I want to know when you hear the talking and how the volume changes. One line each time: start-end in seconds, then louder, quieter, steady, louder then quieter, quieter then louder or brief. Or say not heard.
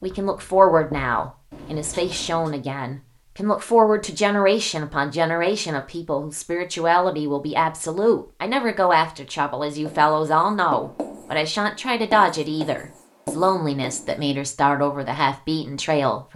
0.0-16.3 steady.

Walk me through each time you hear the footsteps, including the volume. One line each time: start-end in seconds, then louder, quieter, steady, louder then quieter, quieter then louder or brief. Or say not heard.
not heard.